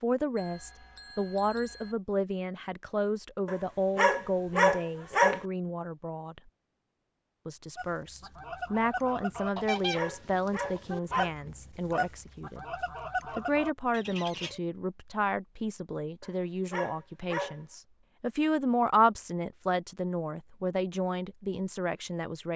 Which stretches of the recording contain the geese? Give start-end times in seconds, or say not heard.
7.8-14.6.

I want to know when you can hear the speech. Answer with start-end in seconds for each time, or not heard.
0.0-6.4, 7.5-12.7, 13.3-22.5.